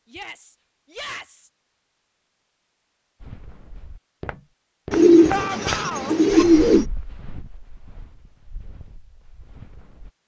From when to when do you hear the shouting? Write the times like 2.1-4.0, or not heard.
0.1-1.5, 5.2-6.2.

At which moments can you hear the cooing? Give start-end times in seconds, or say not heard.
4.9-6.8.